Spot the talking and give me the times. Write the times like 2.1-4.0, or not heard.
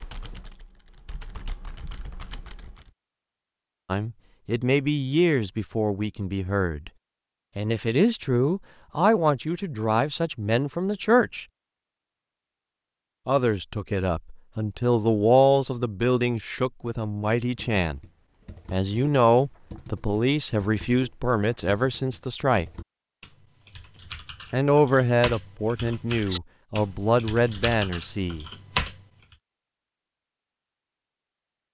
3.9-6.9, 7.5-11.4, 13.2-18.0, 18.7-22.7, 24.5-28.5.